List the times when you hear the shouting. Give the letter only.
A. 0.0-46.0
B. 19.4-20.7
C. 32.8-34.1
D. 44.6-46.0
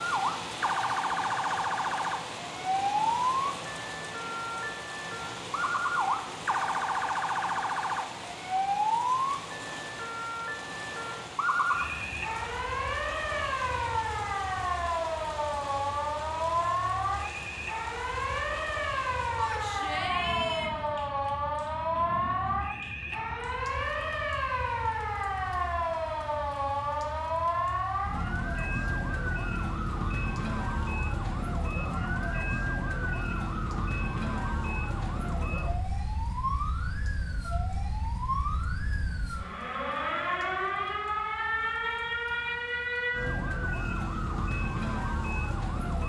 B.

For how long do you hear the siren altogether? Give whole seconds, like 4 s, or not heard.
46 s.